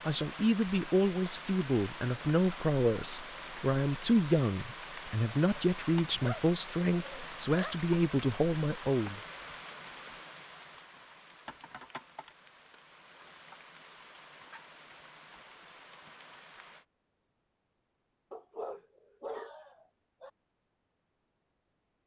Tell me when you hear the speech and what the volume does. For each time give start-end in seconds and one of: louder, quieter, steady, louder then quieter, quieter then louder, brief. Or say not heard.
0.1-9.2 steady.